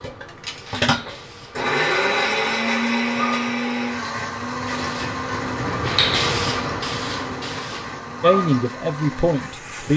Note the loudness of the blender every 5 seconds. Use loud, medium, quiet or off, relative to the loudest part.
loud, medium.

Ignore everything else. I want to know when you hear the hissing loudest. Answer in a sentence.
The loudest moment of the hissing is at 6 seconds.